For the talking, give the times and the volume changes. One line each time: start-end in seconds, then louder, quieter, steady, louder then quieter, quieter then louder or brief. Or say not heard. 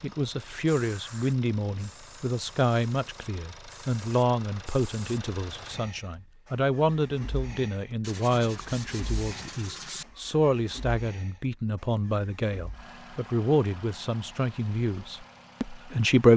0.0-16.3 steady.